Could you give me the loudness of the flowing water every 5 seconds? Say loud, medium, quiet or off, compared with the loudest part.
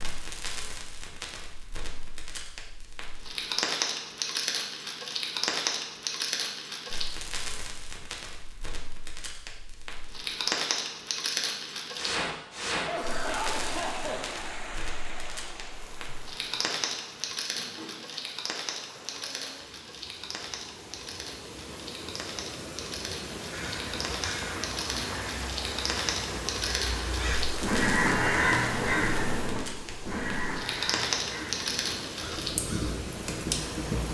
off, off, loud, medium, loud, loud, loud.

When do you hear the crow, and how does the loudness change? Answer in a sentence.
The crow can be heard from 23.5 to 33.0 s, getting louder then quieter.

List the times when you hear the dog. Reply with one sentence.
The dog can't be heard in this clip.